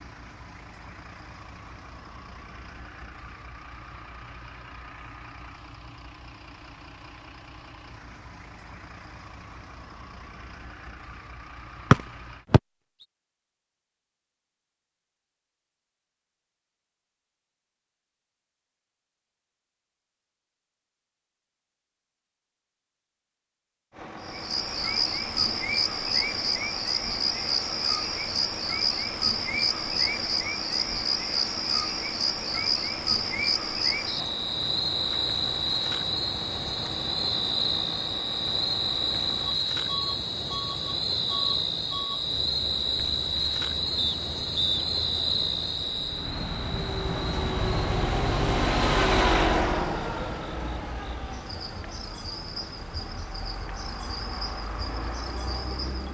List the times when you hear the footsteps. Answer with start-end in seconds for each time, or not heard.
not heard.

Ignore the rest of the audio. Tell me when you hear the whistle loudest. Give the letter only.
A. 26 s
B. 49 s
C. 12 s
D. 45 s
C.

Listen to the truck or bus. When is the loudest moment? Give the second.
49 s.